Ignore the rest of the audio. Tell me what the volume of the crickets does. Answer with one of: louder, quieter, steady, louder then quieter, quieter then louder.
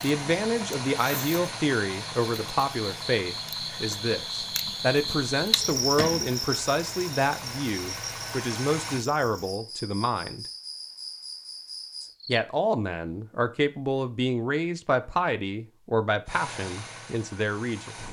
louder then quieter.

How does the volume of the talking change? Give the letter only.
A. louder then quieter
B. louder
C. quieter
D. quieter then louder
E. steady
E.